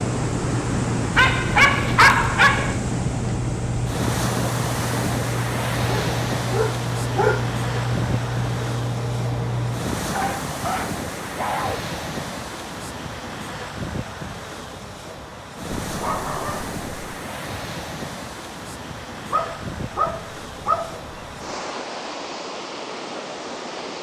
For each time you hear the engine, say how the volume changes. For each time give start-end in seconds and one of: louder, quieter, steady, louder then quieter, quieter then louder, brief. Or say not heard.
0.0-9.9 steady.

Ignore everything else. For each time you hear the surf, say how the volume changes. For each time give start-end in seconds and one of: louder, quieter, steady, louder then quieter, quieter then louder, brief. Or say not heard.
0.0-23.9 quieter.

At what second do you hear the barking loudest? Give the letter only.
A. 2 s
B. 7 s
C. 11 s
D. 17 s
A.